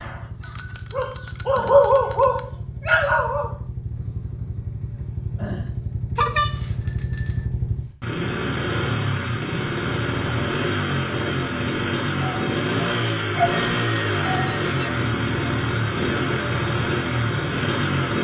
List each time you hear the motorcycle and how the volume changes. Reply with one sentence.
The motorcycle can be heard from 0.0 to 18.1 s, getting louder.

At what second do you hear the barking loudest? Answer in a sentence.
The volume of the barking peaks at 2 seconds.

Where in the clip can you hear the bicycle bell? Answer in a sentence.
The bicycle bell can be heard from 0.4 to 2.4 s, from 6.2 to 7.5 s and from 13.4 to 14.9 s.